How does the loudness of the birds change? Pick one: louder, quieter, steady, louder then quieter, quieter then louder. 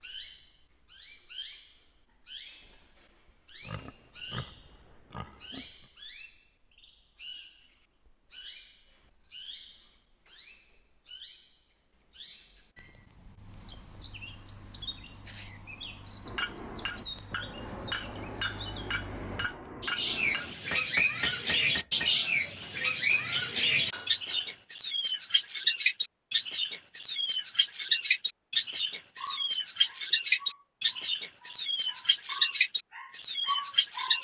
louder.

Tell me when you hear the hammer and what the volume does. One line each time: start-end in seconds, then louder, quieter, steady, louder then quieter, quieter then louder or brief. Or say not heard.
16.2-24.6 quieter.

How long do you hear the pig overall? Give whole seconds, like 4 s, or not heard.
2 s.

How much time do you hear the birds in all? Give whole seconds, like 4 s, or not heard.
34 s.